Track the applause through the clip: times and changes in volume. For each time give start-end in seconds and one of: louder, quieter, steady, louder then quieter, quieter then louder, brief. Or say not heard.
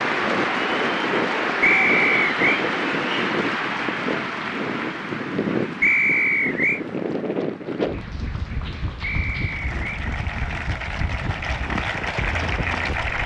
0.0-13.2 quieter then louder.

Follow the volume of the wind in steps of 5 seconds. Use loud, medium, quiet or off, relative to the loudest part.
loud, loud, medium.